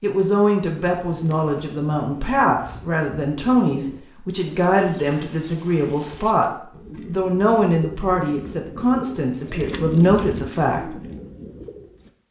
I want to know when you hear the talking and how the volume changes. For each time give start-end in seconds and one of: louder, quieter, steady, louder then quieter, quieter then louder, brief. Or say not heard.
0.0-11.0 steady.